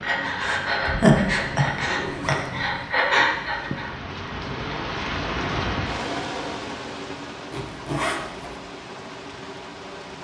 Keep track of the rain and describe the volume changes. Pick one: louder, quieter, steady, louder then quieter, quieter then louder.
louder then quieter.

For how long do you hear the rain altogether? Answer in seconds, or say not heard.
10 s.